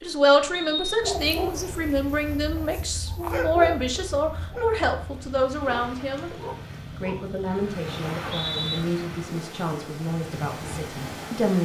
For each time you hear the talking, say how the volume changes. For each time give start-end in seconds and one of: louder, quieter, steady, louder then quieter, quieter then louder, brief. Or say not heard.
0.0-6.3 steady
7.0-11.6 quieter.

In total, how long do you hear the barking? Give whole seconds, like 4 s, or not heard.
6 s.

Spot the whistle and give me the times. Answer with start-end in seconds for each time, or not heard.
0.5-1.1, 8.0-8.8.